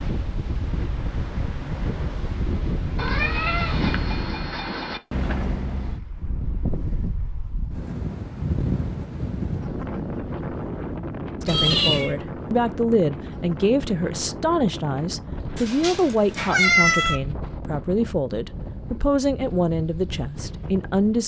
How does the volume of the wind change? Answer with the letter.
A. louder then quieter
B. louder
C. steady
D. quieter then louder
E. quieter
E.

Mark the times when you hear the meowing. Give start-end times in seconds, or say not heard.
3.0-5.0, 11.4-12.2, 15.6-17.2.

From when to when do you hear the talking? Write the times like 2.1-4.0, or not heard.
11.4-21.2.